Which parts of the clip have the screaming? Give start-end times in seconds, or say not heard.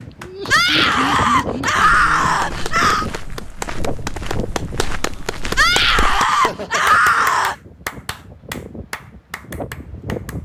0.5-3.1, 5.5-7.5.